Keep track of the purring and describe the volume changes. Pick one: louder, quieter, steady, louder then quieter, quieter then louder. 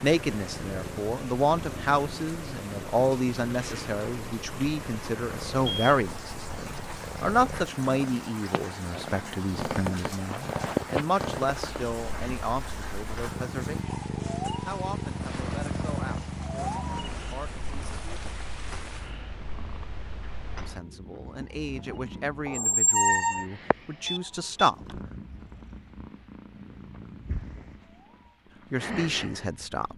louder then quieter.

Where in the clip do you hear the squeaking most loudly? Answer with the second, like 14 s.
23 s.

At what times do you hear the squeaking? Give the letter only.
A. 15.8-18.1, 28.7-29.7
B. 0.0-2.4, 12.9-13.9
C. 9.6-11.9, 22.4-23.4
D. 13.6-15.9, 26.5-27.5
C.